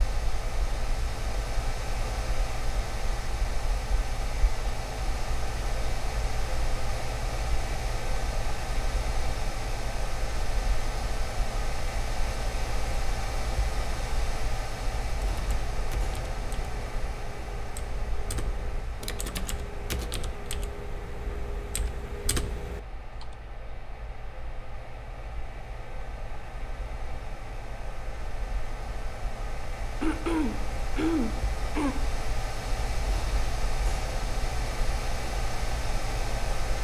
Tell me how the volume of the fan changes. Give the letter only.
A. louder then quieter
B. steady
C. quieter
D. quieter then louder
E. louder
D.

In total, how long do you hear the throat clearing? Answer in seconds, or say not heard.
2 s.